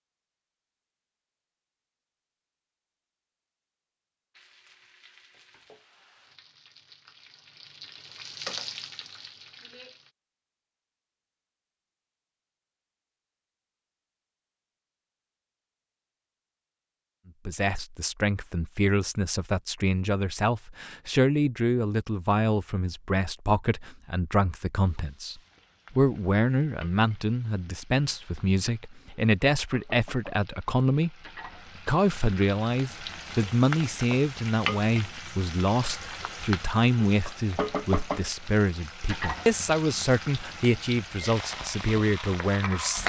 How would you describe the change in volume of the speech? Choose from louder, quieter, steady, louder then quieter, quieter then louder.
steady.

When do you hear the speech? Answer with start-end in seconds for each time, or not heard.
17.4-31.1, 31.9-43.0.